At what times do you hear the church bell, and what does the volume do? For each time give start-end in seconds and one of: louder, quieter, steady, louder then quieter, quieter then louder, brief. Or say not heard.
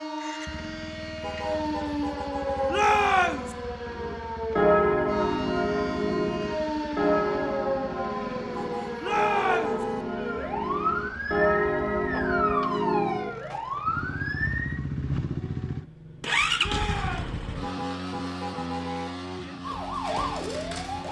3.9-13.6 quieter then louder.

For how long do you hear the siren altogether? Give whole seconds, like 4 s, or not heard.
16 s.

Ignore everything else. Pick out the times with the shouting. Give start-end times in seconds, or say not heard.
2.6-3.5, 9.0-9.8, 16.6-17.4.